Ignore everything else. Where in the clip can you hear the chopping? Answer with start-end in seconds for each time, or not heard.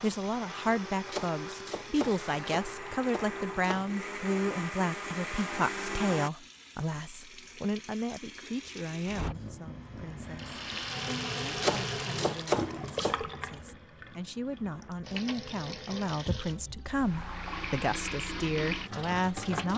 1.1-3.9, 11.6-13.2.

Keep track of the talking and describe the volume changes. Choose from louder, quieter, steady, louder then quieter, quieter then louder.
quieter then louder.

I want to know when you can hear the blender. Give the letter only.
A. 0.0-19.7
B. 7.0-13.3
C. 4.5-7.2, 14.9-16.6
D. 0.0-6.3
D.